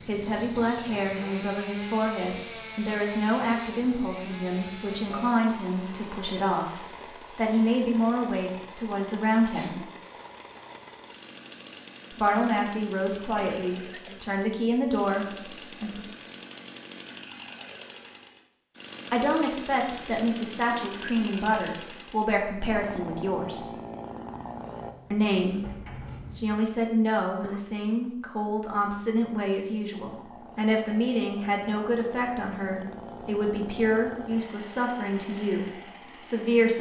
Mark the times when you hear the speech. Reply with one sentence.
The speech can be heard from 0.1 to 9.8 s, from 12.1 to 16.1 s, from 19.1 to 23.7 s and from 25.1 to 36.7 s.